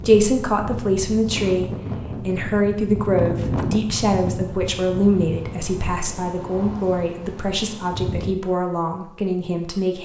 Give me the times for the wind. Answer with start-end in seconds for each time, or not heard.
0.0-8.3.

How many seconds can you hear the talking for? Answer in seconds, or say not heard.
10 s.